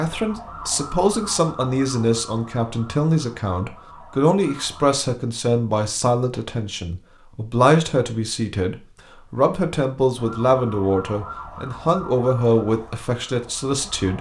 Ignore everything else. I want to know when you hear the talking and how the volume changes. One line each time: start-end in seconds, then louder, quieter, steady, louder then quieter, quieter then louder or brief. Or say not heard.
0.0-14.1 steady.